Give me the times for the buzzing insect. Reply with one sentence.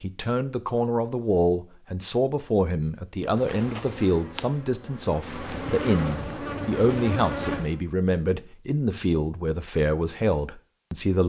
The buzzing insect can be heard from 3.2 to 7.8 s.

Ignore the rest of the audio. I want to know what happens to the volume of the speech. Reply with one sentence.
The loudness of the speech stays about the same.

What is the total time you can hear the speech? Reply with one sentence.
You can hear the speech for 11 seconds altogether.